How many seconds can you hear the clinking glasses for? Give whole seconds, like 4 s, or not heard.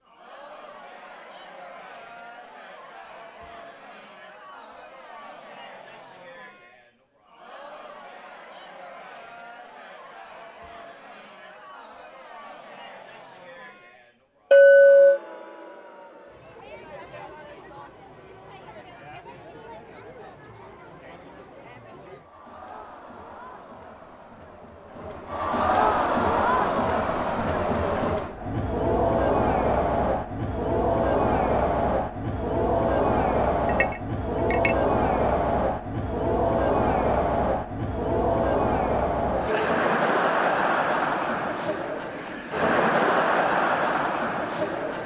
2 s.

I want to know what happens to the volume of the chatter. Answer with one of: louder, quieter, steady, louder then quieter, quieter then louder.
louder.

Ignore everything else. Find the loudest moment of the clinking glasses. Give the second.
15 s.